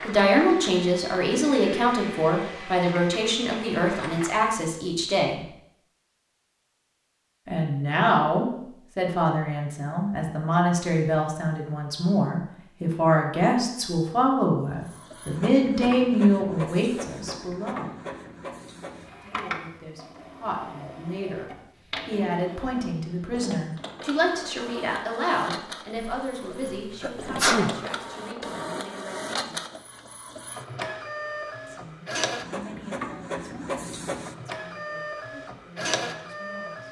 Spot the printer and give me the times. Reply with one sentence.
The printer can be heard from 0.0 to 4.5 s and from 14.8 to 36.8 s.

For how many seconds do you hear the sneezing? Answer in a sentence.
You can hear the sneezing for 2 seconds altogether.